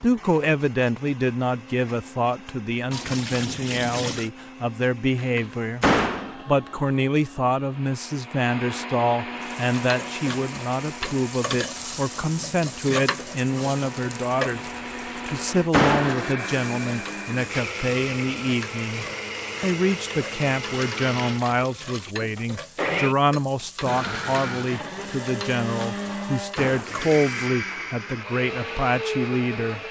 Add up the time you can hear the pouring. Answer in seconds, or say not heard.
3 s.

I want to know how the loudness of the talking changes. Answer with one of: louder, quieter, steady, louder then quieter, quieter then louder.
steady.